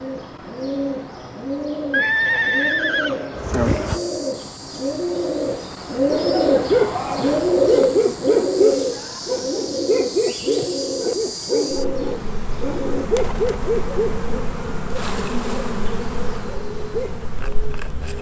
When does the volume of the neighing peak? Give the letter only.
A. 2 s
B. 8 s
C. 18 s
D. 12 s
A.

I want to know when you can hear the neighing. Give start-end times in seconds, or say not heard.
1.9-4.0.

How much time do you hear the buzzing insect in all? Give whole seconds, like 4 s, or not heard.
15 s.